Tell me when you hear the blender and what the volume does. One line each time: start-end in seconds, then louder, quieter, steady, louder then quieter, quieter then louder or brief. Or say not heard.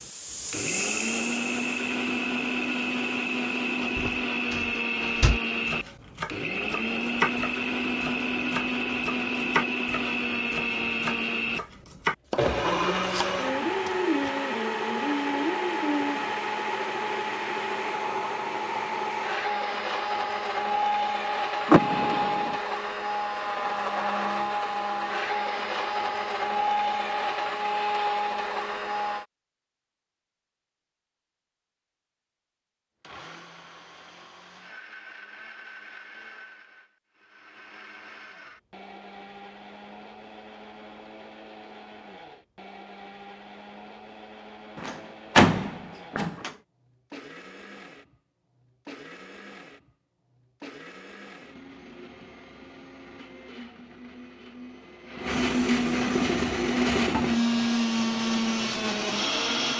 0.4-29.2 steady
33.0-59.7 louder.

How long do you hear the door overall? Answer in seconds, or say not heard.
4 s.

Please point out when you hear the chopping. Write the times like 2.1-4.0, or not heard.
5.5-14.3.